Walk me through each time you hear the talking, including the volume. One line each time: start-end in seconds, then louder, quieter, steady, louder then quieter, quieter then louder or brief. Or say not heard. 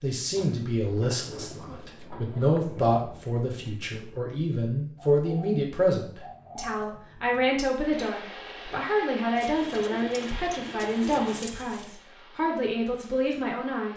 0.0-13.9 steady.